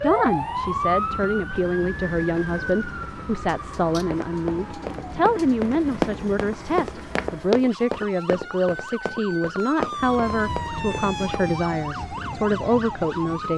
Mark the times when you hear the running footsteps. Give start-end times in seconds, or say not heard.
4.1-11.5.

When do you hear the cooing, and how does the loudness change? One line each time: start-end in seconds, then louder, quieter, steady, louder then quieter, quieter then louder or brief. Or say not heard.
not heard.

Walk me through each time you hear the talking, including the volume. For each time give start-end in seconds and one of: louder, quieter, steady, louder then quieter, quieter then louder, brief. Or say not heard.
0.0-13.5 steady.